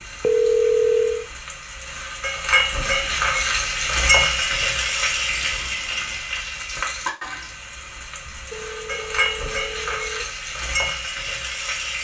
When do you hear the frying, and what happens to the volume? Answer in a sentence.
You can hear the frying from 0.0 to 11.9 s, getting louder then quieter.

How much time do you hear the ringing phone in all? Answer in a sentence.
The ringing phone can be heard for 4 seconds in total.